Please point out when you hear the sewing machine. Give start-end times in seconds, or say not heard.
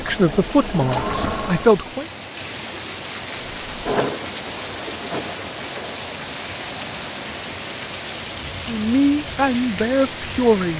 0.0-1.7, 3.6-6.0.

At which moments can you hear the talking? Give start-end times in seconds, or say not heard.
0.0-2.0, 8.7-10.7.